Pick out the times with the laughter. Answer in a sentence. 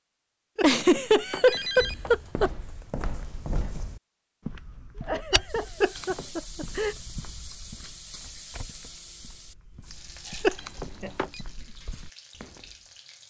The laughter can be heard from 0.6 to 2.5 s, from 5.0 to 7.0 s and from 10.2 to 11.2 s.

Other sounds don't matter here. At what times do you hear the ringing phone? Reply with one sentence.
You can hear the ringing phone from 0.6 to 2.2 s, from 5.8 to 6.2 s and from 10.4 to 11.4 s.